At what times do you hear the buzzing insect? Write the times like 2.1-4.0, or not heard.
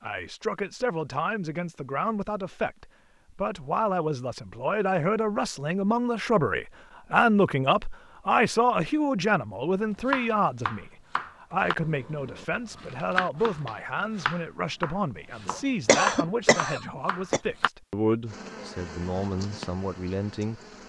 18.2-20.8.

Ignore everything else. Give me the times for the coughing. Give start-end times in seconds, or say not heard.
15.4-17.4.